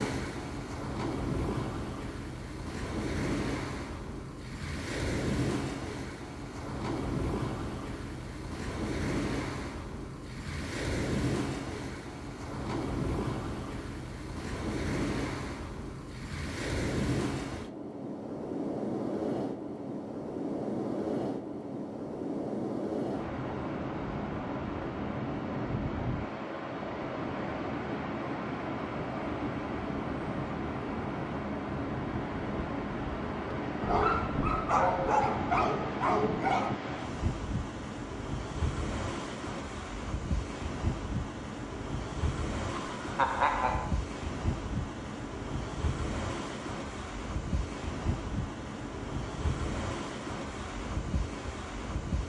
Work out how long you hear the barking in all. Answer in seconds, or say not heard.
3 s.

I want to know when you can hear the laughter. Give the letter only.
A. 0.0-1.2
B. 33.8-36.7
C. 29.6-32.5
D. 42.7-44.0
D.